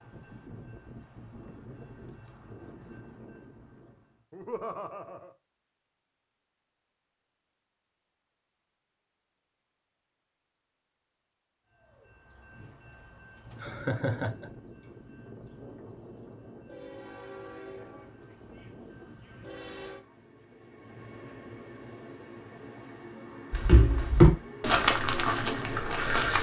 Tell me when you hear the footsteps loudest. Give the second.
24 s.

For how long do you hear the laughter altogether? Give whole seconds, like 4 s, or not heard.
2 s.